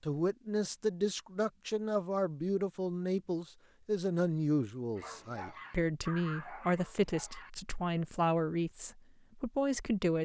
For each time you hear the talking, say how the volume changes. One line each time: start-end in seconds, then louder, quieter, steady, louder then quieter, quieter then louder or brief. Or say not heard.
0.0-10.2 steady.